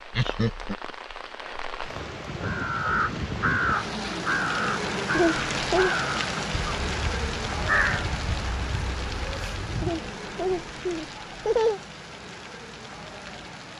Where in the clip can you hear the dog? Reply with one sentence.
The dog can't be heard in this clip.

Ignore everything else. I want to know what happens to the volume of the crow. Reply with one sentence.
The loudness of the crow goes down.